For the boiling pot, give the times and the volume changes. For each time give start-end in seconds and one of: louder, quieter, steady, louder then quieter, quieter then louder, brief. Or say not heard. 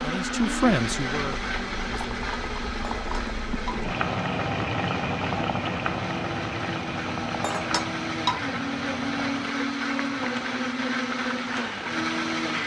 0.2-12.6 louder then quieter.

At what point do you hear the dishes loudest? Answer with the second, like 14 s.
8 s.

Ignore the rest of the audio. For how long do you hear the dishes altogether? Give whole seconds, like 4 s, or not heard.
2 s.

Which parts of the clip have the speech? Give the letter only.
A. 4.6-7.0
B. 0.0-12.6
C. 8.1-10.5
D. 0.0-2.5
D.